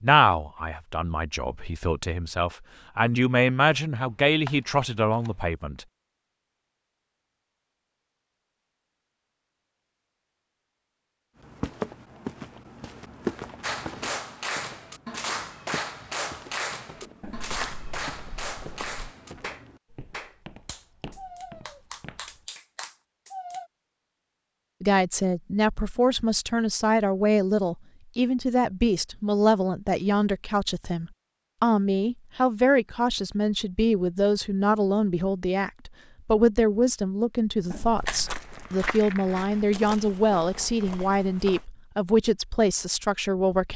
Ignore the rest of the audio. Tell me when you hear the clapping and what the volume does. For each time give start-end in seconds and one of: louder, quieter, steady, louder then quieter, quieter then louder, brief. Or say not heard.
13.6-23.7 quieter.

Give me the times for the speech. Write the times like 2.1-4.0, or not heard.
0.0-5.8, 24.8-43.7.